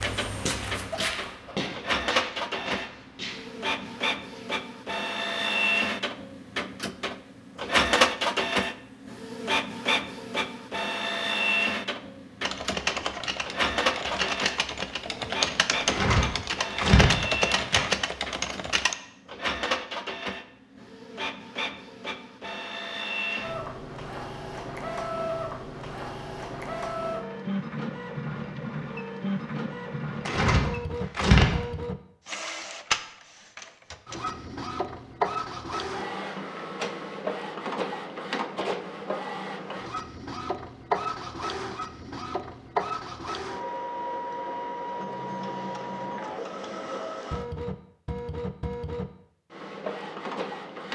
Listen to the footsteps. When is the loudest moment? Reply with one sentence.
The volume of the footsteps peaks at 1 second.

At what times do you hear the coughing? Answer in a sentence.
You can't hear the coughing here.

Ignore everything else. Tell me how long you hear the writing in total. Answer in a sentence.
You can't hear the writing here.